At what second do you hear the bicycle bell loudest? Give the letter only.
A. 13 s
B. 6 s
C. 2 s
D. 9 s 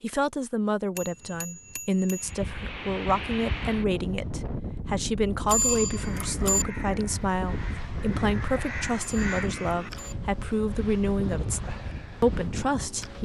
B.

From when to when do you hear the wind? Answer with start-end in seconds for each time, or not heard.
2.1-13.2.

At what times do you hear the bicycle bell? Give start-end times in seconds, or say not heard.
0.9-2.3, 5.5-6.7, 8.9-10.2.